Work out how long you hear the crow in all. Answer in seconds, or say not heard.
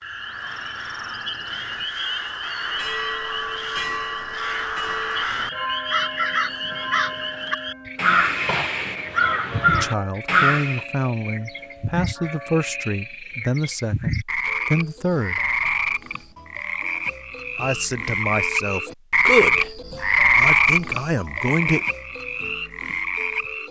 11 s.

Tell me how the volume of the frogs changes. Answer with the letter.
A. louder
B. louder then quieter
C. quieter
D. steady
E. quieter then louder
A.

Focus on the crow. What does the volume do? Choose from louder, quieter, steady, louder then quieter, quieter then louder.
louder.